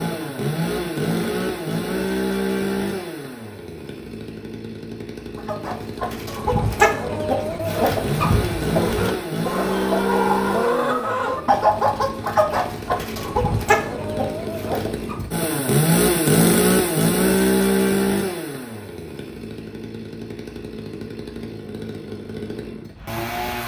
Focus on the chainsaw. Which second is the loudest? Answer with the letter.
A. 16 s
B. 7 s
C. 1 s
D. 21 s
A.